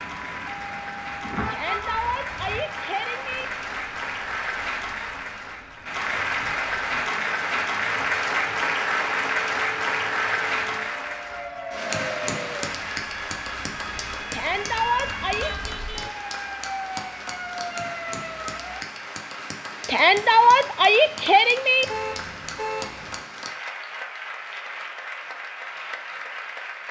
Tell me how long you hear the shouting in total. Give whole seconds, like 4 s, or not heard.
5 s.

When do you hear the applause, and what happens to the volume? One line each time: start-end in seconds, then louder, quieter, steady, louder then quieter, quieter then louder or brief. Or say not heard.
0.0-26.8 louder then quieter.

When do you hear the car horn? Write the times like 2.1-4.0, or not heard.
1.2-2.6, 15.4-16.1, 21.9-23.2.